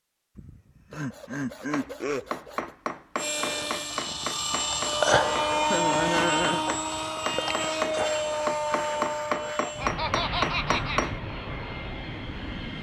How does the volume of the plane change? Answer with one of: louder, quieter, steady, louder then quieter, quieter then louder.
quieter.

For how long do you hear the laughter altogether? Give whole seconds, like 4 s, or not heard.
5 s.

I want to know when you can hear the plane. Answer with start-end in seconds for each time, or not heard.
3.1-12.7.